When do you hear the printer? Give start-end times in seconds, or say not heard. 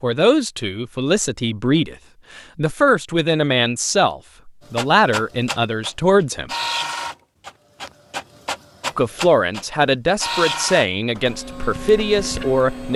4.6-12.9.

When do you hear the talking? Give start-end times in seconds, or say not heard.
0.0-6.5, 8.9-12.9.